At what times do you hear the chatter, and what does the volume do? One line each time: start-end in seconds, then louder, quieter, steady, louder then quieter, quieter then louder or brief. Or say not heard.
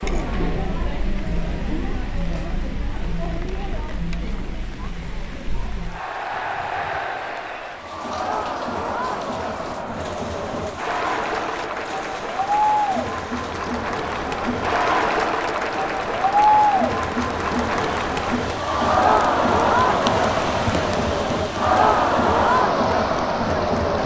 0.0-24.0 louder.